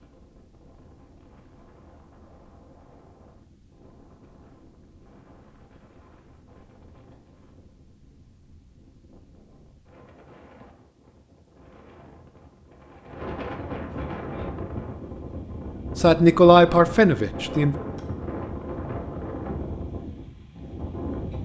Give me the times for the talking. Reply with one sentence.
You can hear the talking from 15.9 to 17.8 s.